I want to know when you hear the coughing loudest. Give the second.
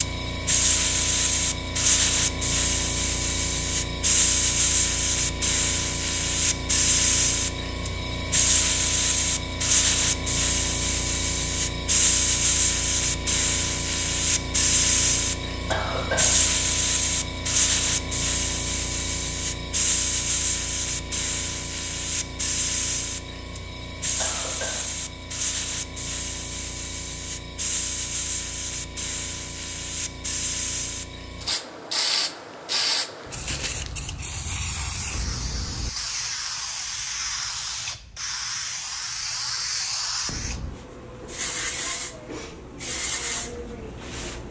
16 s.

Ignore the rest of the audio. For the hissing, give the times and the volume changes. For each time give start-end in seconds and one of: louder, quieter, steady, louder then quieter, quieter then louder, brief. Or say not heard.
0.0-44.4 quieter.